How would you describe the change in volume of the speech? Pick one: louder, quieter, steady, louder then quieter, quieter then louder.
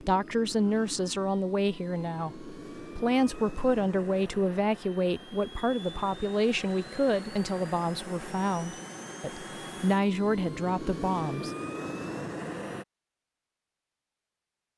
steady.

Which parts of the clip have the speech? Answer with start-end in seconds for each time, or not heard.
0.0-11.5.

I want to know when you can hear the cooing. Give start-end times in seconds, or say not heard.
not heard.